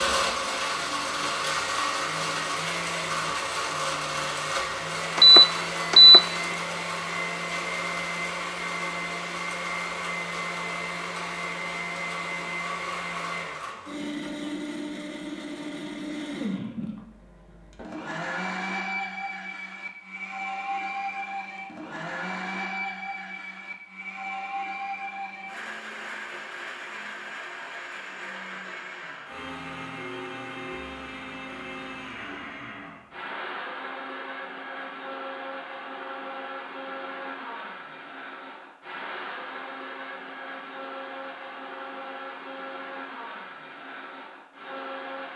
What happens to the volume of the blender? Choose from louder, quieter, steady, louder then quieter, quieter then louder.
quieter.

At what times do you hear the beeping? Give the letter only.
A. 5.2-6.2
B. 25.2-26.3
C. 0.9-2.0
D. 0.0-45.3
A.